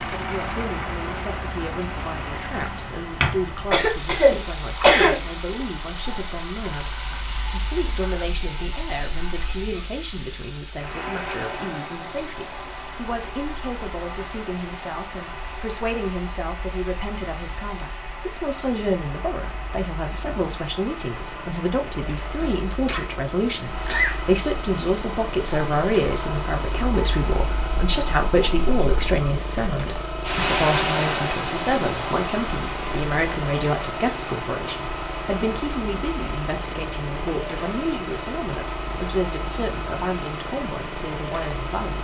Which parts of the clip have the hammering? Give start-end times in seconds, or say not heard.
not heard.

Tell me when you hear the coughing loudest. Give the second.
5 s.